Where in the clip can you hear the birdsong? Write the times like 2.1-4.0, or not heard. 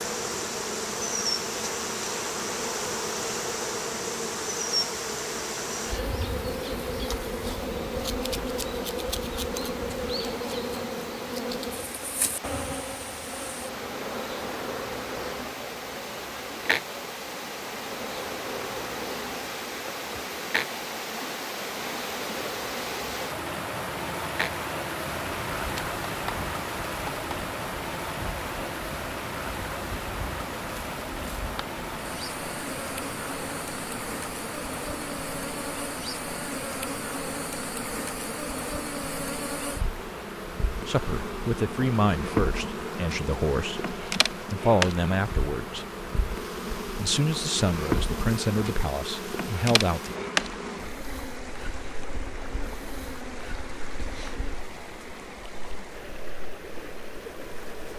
not heard.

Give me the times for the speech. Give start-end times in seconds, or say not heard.
40.9-45.9, 47.0-50.1.